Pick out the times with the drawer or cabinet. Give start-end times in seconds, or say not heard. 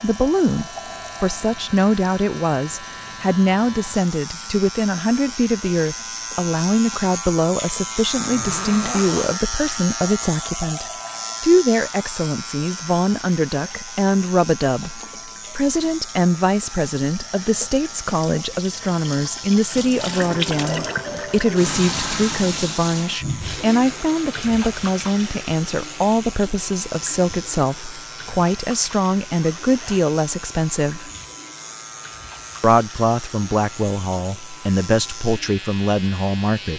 not heard.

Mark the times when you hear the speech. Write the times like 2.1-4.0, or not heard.
0.0-31.1, 32.6-36.7.